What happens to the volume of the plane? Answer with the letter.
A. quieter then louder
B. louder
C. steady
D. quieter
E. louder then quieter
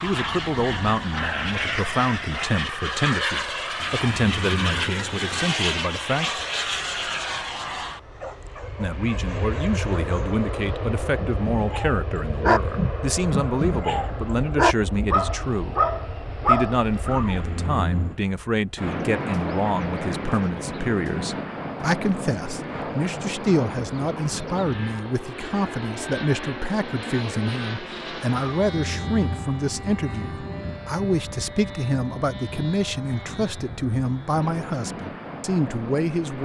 D.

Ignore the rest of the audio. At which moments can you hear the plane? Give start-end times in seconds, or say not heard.
0.0-36.4.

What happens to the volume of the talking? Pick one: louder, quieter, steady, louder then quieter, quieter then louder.
steady.